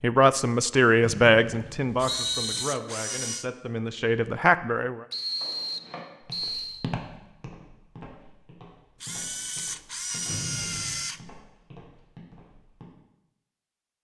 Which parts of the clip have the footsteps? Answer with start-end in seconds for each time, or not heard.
5.3-12.8.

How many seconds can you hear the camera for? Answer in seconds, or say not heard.
4 s.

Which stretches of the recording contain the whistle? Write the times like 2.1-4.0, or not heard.
1.0-2.6, 5.1-6.8, 10.2-11.1.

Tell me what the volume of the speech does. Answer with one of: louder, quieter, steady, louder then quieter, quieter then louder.
quieter then louder.